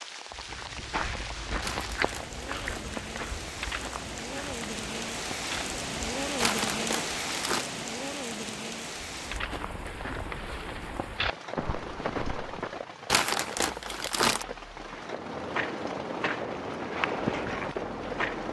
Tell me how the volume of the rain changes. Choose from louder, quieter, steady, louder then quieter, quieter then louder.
louder then quieter.